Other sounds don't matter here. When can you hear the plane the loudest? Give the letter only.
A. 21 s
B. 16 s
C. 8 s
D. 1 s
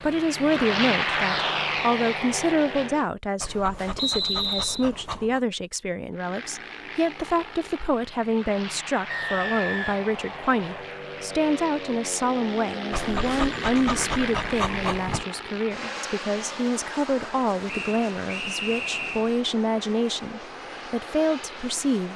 D.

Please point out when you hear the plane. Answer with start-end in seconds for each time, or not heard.
0.0-3.1, 6.1-22.1.